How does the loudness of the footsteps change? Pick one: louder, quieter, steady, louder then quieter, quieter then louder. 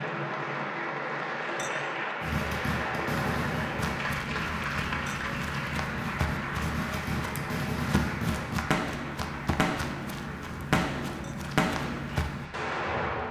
steady.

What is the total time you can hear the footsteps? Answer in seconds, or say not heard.
9 s.